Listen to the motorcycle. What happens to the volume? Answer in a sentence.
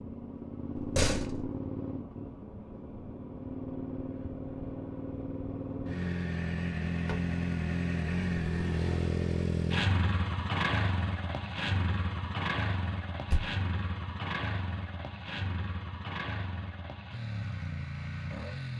The volume of the motorcycle goes up, then down.